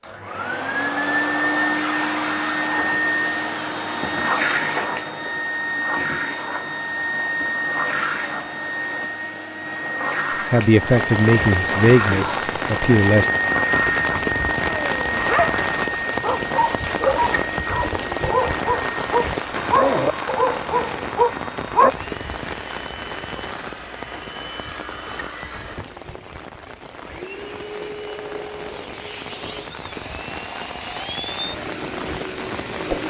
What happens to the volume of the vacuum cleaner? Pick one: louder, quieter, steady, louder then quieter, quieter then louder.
quieter.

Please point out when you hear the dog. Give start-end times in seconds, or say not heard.
14.7-21.9.